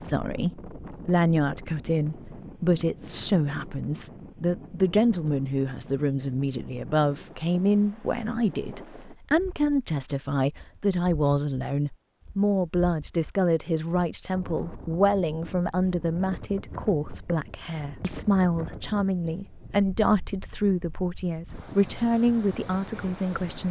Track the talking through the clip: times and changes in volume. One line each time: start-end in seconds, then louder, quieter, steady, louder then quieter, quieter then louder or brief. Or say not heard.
0.0-23.6 steady.